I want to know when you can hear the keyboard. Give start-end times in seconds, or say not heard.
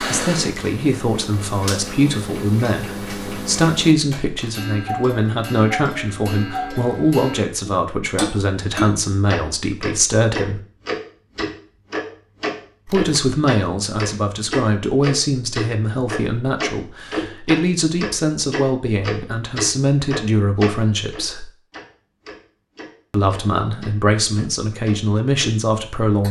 not heard.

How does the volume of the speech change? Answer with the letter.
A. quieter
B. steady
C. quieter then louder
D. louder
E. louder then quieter
B.